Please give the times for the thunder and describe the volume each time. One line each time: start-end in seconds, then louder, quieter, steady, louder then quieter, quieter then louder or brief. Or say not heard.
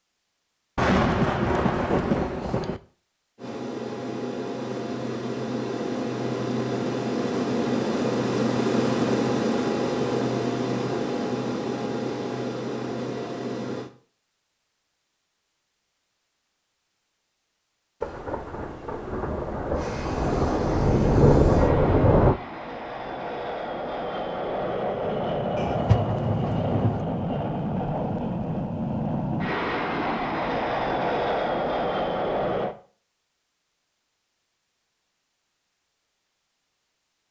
0.8-2.8 brief
18.0-22.4 louder
25.6-27.1 brief.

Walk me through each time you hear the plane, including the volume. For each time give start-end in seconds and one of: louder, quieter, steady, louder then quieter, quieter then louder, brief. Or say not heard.
3.4-13.9 louder then quieter
19.7-32.8 louder.